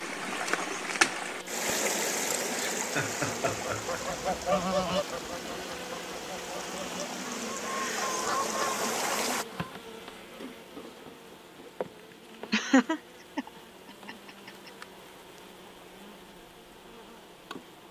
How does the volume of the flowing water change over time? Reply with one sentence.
The loudness of the flowing water goes down, then up.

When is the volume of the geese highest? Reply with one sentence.
The loudest moment of the geese is at 5 seconds.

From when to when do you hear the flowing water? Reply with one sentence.
The flowing water can be heard from 0.0 to 9.4 s.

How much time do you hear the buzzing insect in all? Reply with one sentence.
The buzzing insect can be heard for 18 seconds in total.